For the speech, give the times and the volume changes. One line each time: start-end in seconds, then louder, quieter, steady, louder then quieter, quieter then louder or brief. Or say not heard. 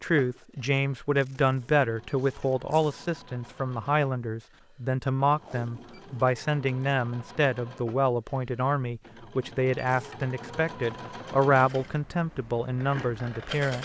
0.0-13.8 steady.